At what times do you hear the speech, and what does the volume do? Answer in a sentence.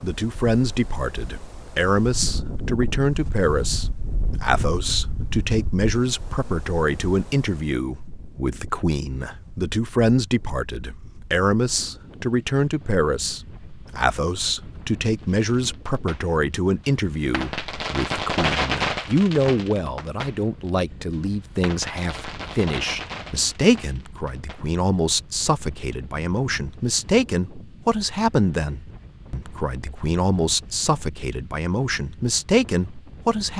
You can hear the speech from 0.0 to 33.5 s, at a steady volume.